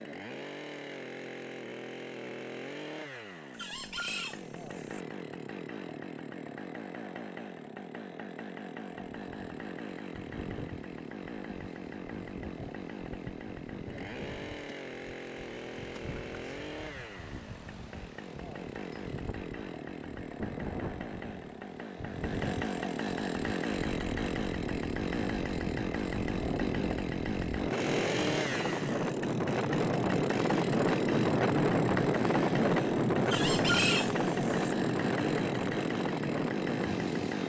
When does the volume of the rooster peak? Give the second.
34 s.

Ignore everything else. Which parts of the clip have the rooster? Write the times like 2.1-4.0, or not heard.
3.5-5.0, 33.2-34.8.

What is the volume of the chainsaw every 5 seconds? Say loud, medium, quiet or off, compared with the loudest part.
medium, medium, medium, medium, loud, loud, loud, loud.